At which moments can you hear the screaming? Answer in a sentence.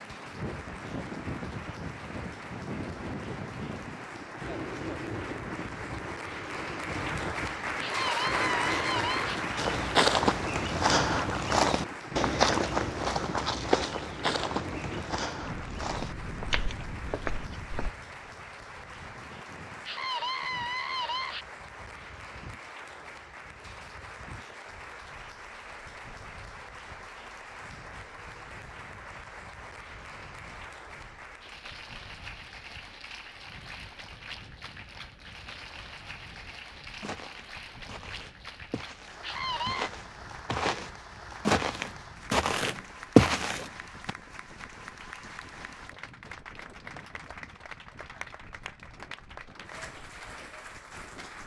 The screaming can be heard from 7.8 to 9.4 s, from 19.9 to 21.4 s and from 39.2 to 39.9 s.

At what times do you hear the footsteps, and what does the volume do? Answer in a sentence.
The footsteps can be heard from 9.6 to 17.9 s, getting quieter; and from 37.0 to 44.1 s, getting louder.